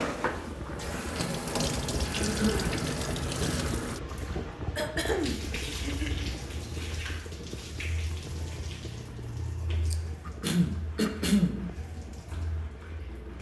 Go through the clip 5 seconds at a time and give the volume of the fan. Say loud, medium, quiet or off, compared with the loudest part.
loud, medium, quiet.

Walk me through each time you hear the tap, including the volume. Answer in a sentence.
The tap can be heard from 0.0 to 13.3 s, getting quieter.